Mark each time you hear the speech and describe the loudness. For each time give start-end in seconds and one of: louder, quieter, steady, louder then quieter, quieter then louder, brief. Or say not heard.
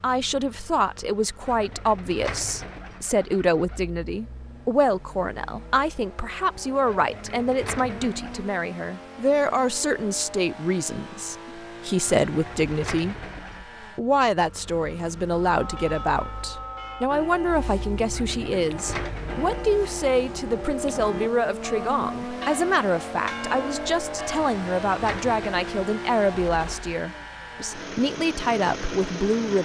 0.0-13.2 steady
13.9-29.5 steady.